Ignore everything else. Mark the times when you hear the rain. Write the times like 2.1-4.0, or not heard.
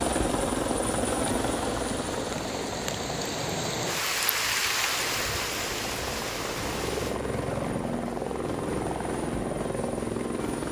0.0-7.2.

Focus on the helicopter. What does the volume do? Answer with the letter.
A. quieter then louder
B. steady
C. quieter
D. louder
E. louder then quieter
A.